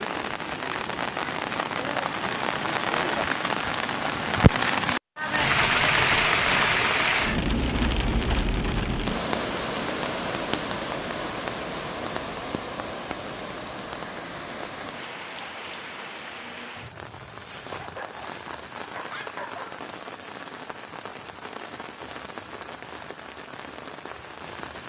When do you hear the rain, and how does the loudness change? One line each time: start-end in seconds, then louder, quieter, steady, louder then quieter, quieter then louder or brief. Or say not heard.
0.0-24.8 quieter.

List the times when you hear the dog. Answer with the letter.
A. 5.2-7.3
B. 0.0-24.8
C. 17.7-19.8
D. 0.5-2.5
C.